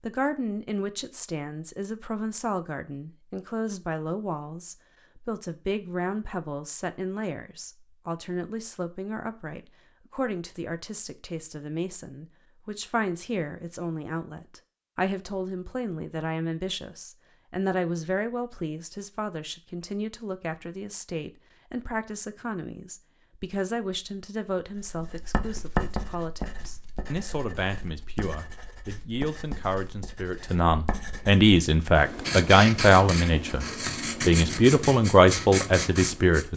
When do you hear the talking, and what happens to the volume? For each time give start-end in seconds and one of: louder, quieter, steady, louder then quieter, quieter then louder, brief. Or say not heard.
0.0-36.5 louder.